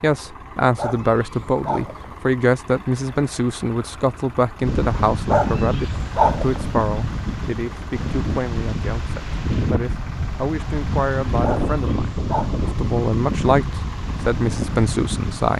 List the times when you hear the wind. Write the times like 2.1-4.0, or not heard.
4.6-15.5.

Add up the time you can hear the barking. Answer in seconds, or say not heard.
4 s.